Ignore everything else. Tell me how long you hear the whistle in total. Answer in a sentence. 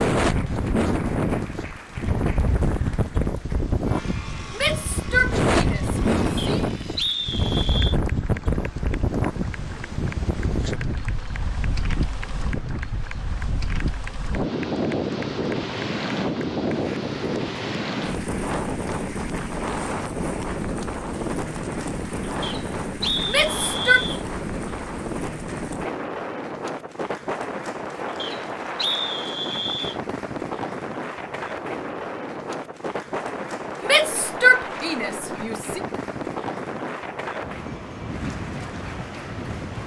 You can hear the whistle for 5 seconds altogether.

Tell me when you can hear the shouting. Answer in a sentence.
You can hear the shouting from 4.5 to 6.6 s, from 23.2 to 24.1 s and from 33.8 to 35.8 s.